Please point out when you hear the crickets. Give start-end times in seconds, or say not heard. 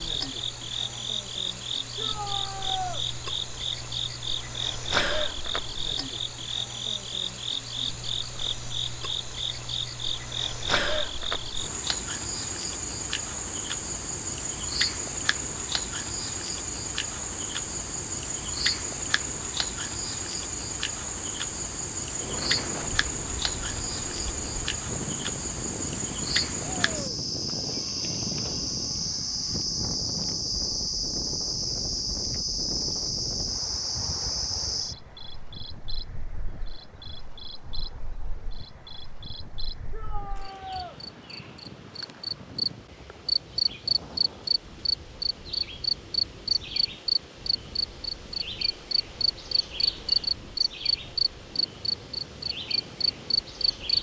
0.0-53.9.